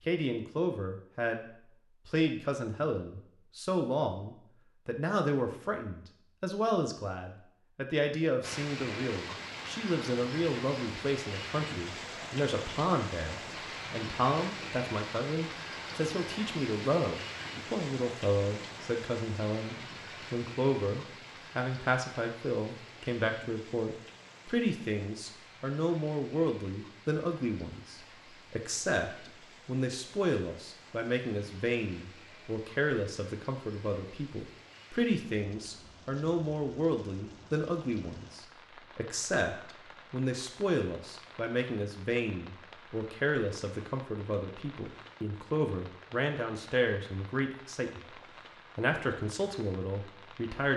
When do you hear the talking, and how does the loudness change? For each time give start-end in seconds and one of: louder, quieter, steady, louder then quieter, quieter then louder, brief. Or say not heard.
0.1-50.7 steady.